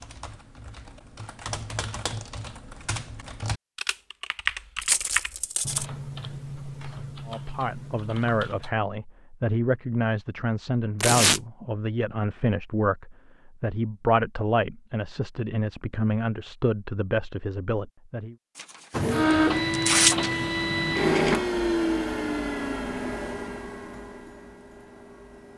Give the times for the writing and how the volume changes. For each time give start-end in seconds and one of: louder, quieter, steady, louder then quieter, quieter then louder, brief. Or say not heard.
not heard.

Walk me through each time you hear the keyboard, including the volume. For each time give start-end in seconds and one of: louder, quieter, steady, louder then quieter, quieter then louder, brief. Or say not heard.
0.0-8.8 louder then quieter.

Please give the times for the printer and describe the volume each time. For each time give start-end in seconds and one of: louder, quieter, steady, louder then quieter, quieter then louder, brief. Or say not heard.
18.9-25.5 quieter.